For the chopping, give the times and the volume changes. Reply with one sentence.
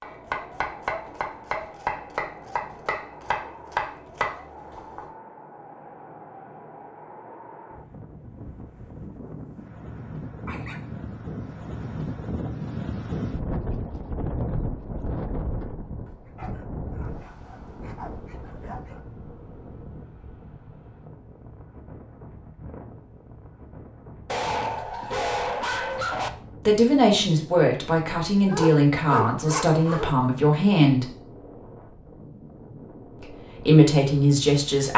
You can hear the chopping from 0.0 to 5.0 s, at a steady volume.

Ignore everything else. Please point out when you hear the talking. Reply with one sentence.
The talking can be heard from 26.6 to 31.1 s and from 33.2 to 34.9 s.